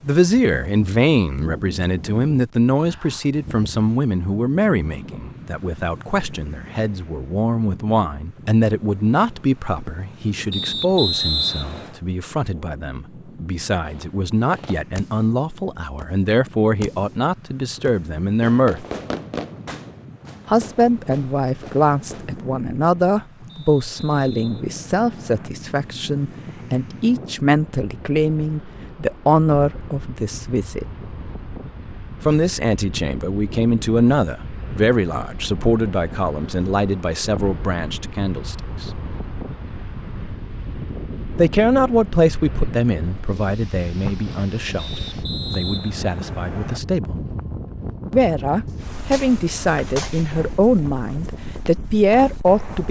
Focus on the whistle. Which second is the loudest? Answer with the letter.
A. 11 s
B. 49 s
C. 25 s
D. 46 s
A.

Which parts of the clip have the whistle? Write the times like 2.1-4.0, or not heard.
10.5-11.9, 23.4-25.5, 44.8-46.8.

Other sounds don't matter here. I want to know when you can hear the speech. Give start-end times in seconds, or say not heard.
0.0-18.9, 20.4-30.9, 32.2-38.9, 41.4-47.2, 48.1-52.8.